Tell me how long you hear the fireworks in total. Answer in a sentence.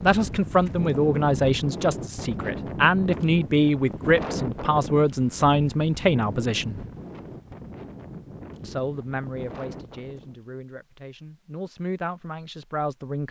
You can't hear the fireworks here.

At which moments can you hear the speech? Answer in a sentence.
The speech can be heard from 0.0 to 6.8 s and from 8.6 to 13.2 s.